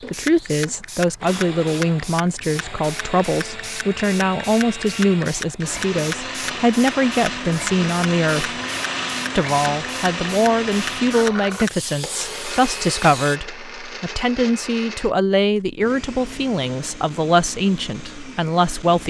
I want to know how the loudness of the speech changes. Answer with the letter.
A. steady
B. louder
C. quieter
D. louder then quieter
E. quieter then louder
A.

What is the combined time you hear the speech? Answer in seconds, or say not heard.
18 s.